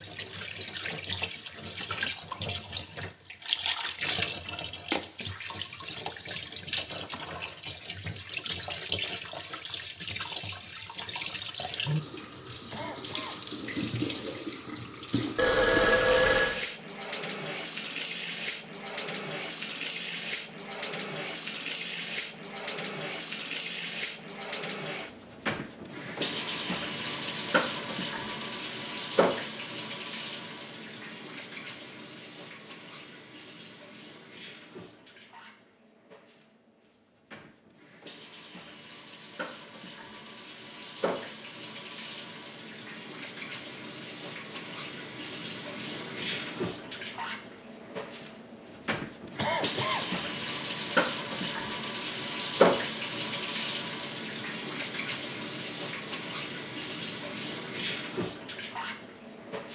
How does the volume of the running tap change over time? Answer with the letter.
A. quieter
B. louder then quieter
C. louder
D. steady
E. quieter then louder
E.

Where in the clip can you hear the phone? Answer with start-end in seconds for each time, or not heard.
15.3-16.6.